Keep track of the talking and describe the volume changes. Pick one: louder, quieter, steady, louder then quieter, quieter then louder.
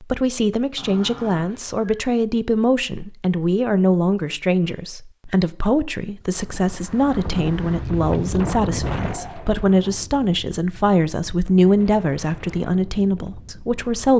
steady.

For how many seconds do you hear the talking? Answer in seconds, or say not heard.
14 s.